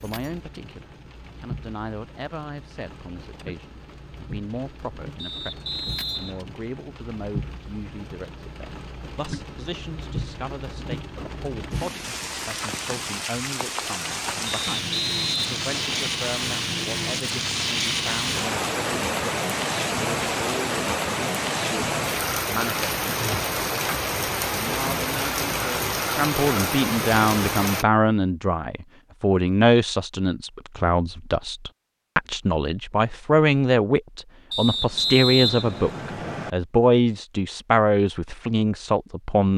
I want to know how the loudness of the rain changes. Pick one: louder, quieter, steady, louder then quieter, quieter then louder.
louder.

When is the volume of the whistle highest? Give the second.
35 s.